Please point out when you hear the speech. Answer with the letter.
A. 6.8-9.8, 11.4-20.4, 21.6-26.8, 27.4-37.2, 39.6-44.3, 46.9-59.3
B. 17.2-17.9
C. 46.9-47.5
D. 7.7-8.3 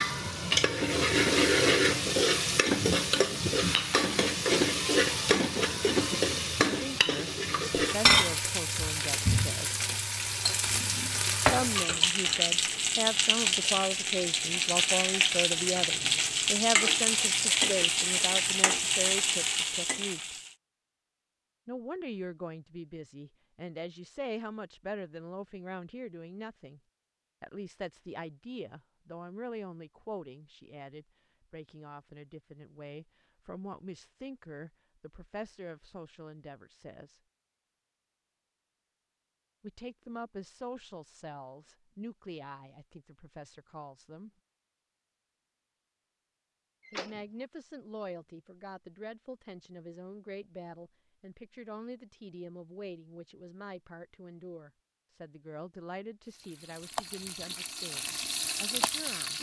A.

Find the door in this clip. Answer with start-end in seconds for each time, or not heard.
46.9-47.5.